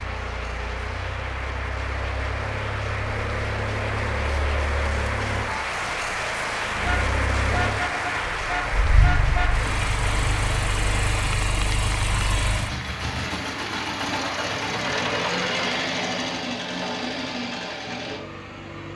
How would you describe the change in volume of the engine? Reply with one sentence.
The loudness of the engine goes up.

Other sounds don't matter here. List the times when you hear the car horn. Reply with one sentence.
You can hear the car horn from 6.8 to 9.6 s.